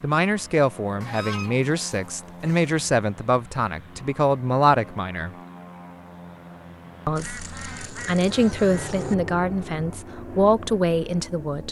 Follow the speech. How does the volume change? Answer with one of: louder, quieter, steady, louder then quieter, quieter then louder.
steady.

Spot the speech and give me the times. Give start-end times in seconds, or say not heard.
0.0-5.3, 7.0-11.6.